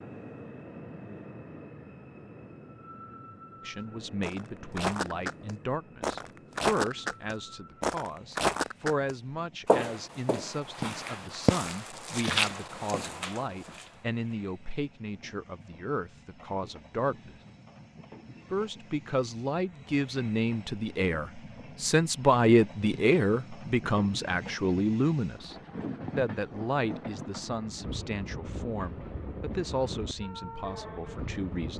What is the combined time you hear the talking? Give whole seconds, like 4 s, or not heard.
26 s.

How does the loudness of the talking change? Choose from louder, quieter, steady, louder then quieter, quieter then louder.
louder then quieter.